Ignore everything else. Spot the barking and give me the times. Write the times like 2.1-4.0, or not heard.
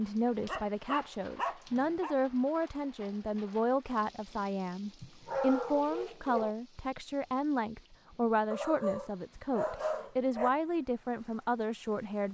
0.5-2.1, 5.0-6.5, 8.5-10.5.